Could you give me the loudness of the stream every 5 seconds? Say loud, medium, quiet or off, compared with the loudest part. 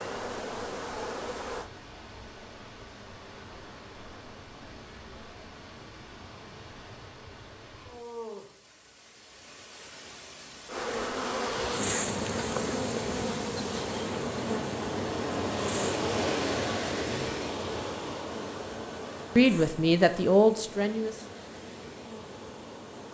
quiet, quiet, medium, loud, quiet.